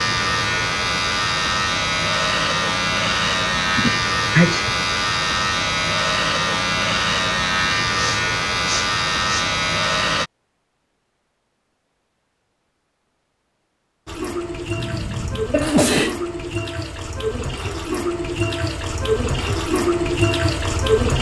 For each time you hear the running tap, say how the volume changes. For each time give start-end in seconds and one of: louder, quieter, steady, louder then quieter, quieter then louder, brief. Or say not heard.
14.1-21.1 louder.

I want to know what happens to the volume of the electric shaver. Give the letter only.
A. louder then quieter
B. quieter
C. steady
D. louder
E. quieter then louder
C.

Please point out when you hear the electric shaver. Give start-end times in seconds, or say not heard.
0.0-10.3.